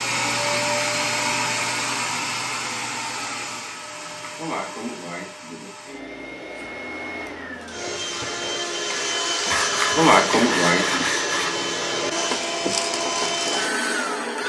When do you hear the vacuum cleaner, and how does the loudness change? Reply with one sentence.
You can hear the vacuum cleaner from 0.0 to 14.4 s, getting quieter then louder.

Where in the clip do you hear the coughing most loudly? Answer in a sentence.
The volume of the coughing peaks at 10 seconds.